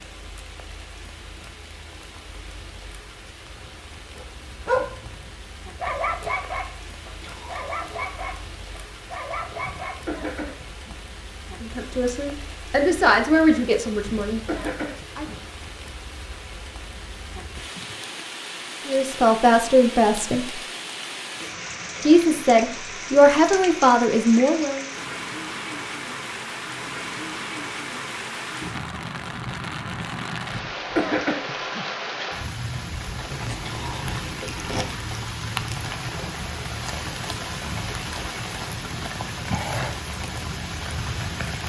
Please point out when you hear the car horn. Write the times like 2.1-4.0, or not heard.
not heard.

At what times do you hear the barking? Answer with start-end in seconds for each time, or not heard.
4.2-10.2.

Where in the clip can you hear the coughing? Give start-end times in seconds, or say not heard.
9.6-11.0, 14.1-15.4, 30.5-31.9.